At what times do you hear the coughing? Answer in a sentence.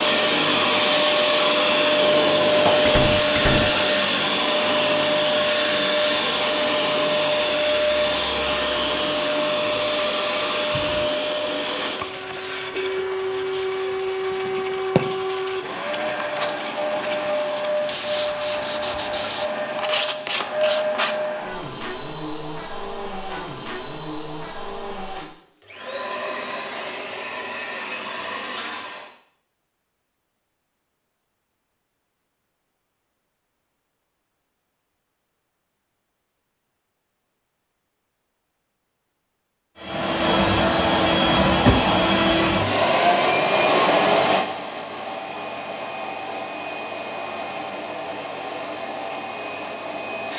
You can't hear the coughing here.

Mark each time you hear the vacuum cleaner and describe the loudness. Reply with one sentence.
The vacuum cleaner can be heard from 0.0 to 29.1 s, getting quieter; and from 39.8 to 50.3 s, getting quieter.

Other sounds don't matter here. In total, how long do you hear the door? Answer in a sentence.
The door can be heard for 2 seconds in total.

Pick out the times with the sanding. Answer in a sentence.
You can hear the sanding from 10.7 to 21.3 s.